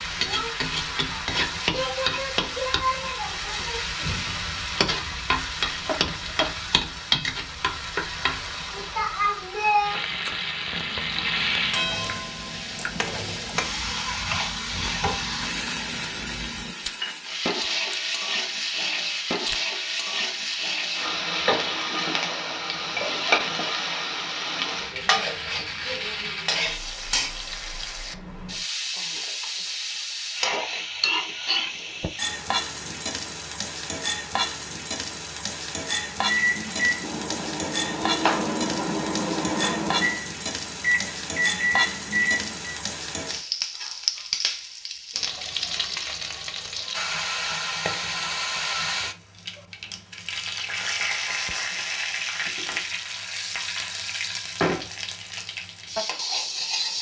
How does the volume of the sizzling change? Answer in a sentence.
The loudness of the sizzling stays about the same.